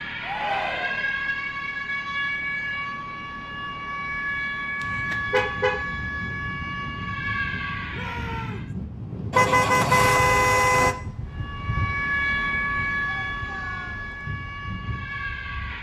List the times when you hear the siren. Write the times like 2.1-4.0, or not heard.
0.0-8.7, 11.3-15.7.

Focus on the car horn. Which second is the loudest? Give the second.
10 s.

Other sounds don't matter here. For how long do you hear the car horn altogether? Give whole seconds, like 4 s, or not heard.
3 s.